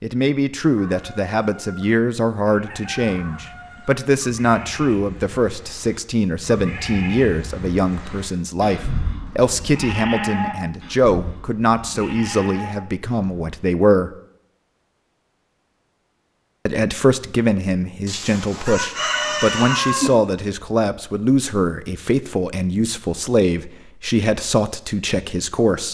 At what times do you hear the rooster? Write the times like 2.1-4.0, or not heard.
0.8-4.0, 18.1-20.1.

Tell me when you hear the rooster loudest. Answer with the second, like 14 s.
20 s.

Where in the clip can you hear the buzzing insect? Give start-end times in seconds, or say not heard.
not heard.